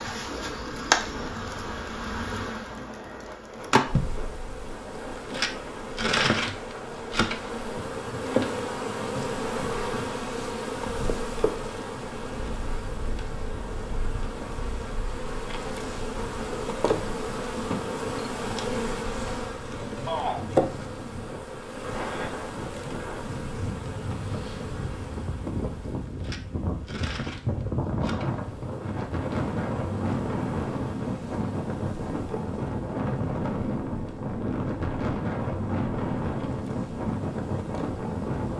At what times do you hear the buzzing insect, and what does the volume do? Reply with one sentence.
You can hear the buzzing insect from 0.0 to 38.5 s, getting quieter.